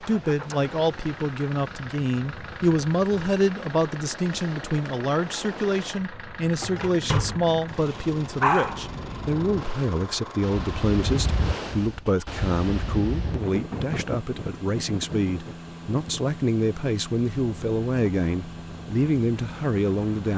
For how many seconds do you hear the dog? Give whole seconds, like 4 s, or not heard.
2 s.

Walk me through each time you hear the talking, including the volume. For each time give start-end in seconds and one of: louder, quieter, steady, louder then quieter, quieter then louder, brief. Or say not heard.
0.0-20.3 steady.